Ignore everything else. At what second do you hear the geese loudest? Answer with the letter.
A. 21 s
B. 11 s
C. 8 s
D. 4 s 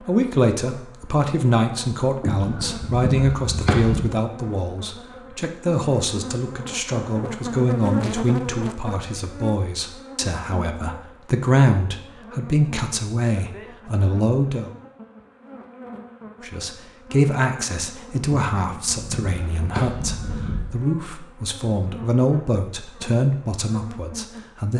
D.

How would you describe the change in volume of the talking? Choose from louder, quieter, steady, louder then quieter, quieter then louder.
steady.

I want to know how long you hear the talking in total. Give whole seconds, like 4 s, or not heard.
23 s.